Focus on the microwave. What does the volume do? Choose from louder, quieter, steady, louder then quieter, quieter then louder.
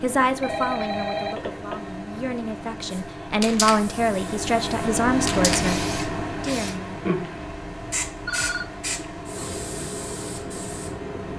louder then quieter.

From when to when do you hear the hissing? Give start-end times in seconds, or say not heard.
2.9-11.3.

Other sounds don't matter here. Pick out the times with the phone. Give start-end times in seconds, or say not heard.
0.4-1.9, 8.2-8.7.